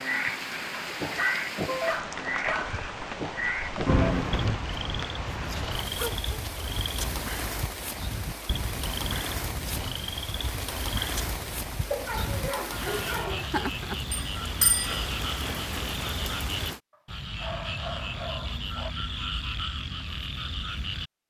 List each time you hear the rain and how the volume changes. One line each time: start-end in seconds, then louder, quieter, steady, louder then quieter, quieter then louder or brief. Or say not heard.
0.0-16.8 steady.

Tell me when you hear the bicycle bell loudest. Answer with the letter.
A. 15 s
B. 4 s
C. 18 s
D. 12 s
B.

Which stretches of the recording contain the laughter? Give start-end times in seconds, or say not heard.
not heard.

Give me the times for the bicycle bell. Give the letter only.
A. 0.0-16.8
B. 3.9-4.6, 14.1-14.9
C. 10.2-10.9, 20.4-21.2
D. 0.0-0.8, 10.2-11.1
B.